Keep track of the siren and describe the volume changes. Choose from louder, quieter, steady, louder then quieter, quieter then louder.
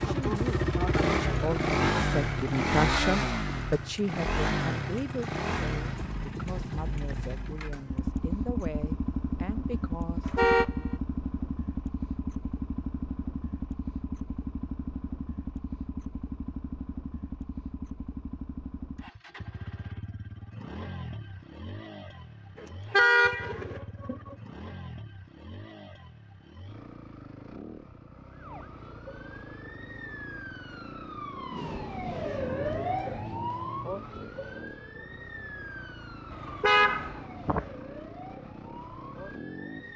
louder then quieter.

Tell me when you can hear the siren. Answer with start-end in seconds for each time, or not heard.
28.3-39.9.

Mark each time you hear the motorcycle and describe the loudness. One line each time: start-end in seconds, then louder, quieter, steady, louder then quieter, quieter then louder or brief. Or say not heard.
0.0-39.9 quieter.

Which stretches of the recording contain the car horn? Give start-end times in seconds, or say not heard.
10.2-10.8, 22.6-24.4, 36.3-37.6.